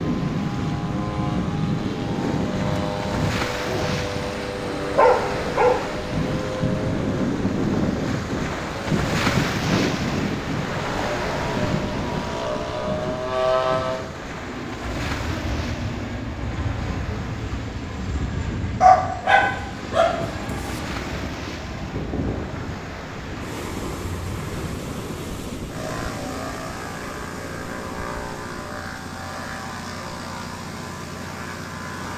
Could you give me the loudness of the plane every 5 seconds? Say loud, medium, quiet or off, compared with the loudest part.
loud, loud, loud, medium, medium, medium, medium.